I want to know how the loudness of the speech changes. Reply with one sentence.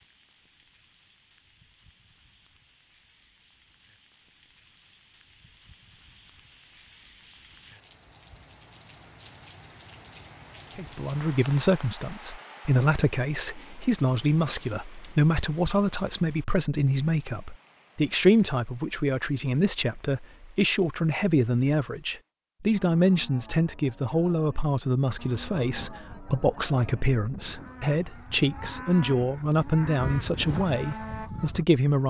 The volume of the speech stays about the same.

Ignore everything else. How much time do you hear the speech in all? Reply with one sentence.
The speech can be heard for 21 seconds in total.